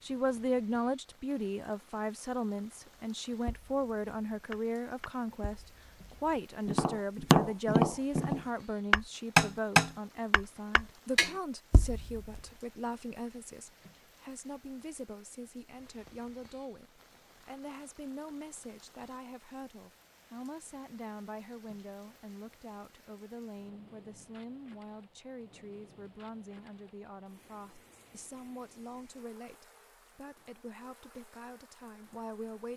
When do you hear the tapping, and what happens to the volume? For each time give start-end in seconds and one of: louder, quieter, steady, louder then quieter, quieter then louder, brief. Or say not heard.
3.0-12.4 louder then quieter.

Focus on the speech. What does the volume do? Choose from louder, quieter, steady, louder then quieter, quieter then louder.
quieter.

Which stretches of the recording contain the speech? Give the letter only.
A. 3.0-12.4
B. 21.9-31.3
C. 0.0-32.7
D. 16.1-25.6
C.